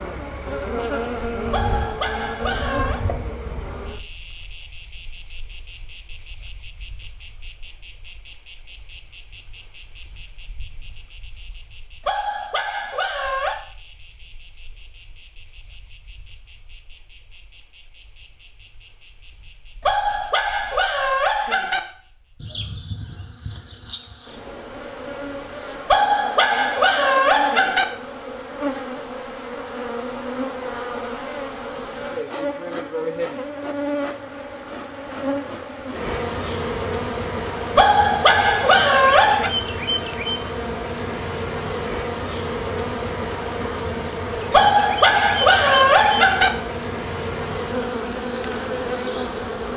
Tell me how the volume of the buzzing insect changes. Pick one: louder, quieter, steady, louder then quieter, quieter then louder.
quieter then louder.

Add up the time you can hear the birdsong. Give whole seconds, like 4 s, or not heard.
not heard.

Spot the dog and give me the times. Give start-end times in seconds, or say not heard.
1.5-3.0, 12.1-13.6, 19.8-21.8, 25.9-27.9, 37.8-39.5, 44.5-46.5.